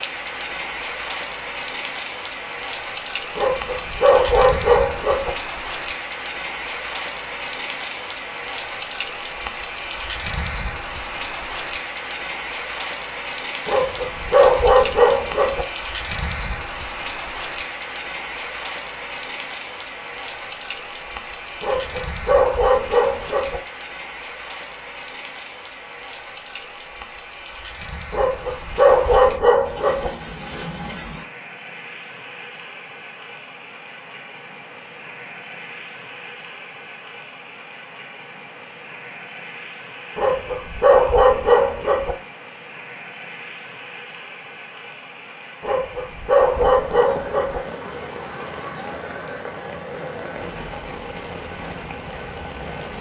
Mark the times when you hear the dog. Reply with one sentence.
The dog can be heard from 3.4 to 5.3 s, from 13.7 to 15.7 s, from 21.6 to 23.6 s, from 28.1 to 30.1 s, from 40.1 to 42.1 s and from 45.6 to 47.6 s.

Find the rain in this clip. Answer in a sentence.
You can hear the rain from 0.0 to 52.9 s.